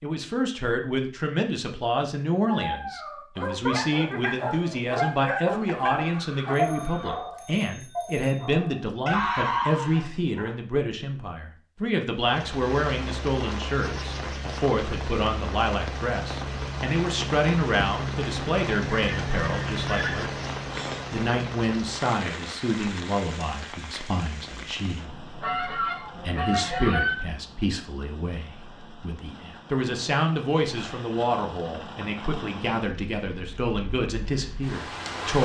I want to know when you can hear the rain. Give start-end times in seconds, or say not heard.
12.2-35.4.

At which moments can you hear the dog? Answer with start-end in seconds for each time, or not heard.
2.5-10.6.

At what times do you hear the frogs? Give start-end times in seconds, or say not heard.
not heard.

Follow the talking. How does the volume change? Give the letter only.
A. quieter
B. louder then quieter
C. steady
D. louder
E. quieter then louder
C.